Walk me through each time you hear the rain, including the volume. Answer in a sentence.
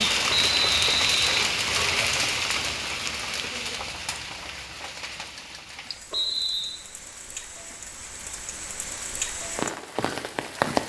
You can hear the rain from 0.0 to 10.8 s, getting quieter then louder.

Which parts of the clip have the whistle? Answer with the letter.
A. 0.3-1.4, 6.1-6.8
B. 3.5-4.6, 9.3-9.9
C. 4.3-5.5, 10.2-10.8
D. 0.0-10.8
A.